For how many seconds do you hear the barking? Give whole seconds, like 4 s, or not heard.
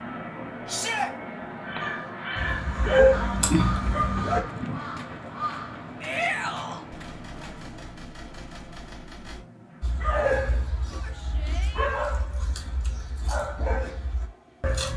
8 s.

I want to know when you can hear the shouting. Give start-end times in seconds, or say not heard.
0.7-1.1, 6.0-6.8, 10.9-11.9.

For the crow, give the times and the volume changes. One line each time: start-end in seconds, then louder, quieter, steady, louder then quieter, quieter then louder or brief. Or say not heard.
1.6-7.8 quieter.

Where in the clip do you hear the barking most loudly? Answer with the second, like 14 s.
3 s.